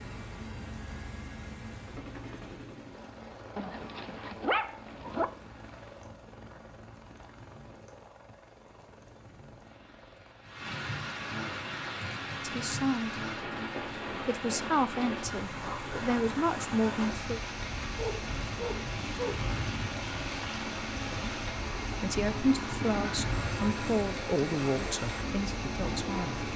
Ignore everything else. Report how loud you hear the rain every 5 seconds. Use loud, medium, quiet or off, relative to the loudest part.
quiet, quiet, loud, loud, loud, loud.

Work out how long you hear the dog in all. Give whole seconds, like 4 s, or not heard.
3 s.